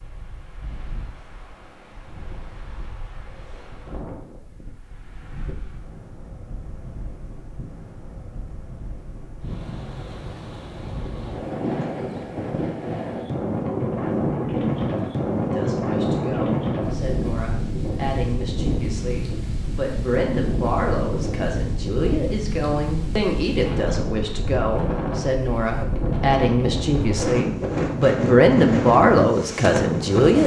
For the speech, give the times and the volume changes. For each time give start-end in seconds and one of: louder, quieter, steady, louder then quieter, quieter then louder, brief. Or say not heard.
15.5-30.4 louder.